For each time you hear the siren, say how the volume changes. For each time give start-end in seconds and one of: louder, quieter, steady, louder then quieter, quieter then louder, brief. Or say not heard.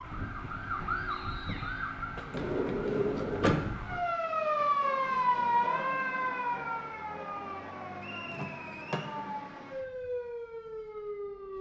0.0-11.5 louder then quieter.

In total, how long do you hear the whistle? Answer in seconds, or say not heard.
2 s.